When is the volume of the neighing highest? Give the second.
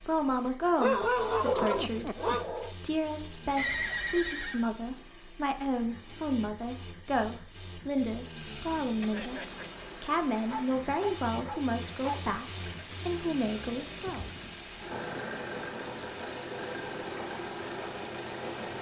4 s.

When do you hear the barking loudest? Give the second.
1 s.